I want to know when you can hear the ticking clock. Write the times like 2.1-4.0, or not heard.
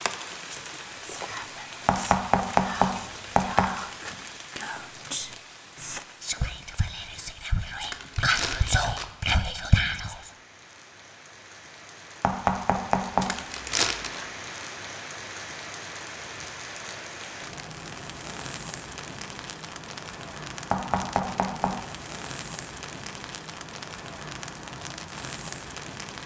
not heard.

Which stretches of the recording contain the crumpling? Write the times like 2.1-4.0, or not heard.
7.8-9.1, 13.2-14.2.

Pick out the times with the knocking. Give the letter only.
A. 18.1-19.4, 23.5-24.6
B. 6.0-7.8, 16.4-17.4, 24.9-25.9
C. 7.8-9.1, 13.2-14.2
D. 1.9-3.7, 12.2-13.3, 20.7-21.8
D.